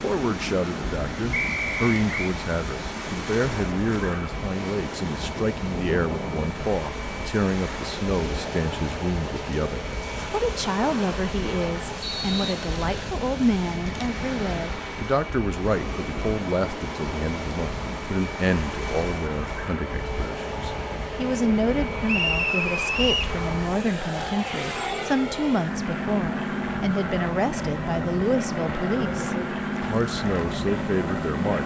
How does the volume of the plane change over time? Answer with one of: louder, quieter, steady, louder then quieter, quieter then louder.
louder.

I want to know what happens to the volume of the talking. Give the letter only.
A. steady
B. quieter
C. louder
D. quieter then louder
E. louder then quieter
A.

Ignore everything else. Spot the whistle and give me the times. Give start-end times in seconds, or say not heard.
1.3-2.4, 12.0-13.1, 22.1-23.4.